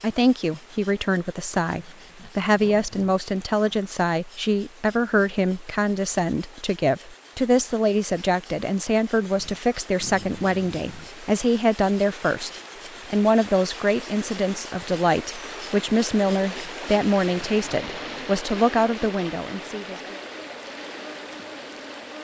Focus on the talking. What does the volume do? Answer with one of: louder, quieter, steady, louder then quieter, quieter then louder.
steady.